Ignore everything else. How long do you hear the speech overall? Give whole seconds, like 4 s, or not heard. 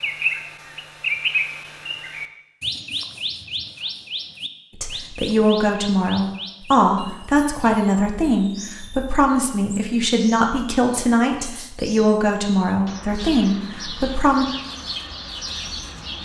10 s.